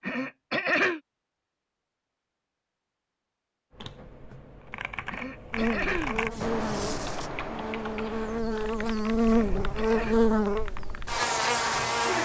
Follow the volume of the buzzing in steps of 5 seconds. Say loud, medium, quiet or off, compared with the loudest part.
off, loud, loud.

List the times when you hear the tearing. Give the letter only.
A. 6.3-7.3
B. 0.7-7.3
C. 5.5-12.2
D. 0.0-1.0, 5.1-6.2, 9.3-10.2
A.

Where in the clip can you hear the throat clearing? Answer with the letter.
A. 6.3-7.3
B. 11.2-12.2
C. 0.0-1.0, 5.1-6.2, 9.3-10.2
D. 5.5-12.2
C.